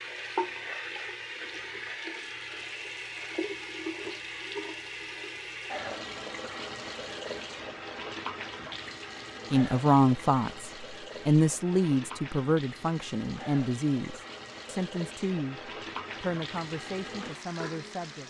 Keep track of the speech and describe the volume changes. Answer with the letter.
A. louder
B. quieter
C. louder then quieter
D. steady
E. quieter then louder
B.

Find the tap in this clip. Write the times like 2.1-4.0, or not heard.
0.0-18.2.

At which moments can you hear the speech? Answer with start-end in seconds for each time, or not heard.
9.5-18.2.